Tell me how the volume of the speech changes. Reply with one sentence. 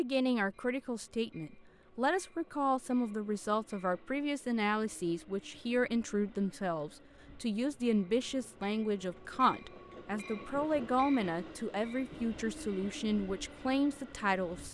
The loudness of the speech stays about the same.